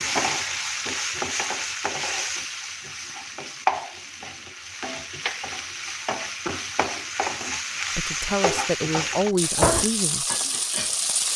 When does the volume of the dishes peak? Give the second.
10 s.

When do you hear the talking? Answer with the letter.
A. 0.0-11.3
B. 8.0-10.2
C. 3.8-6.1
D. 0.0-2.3
B.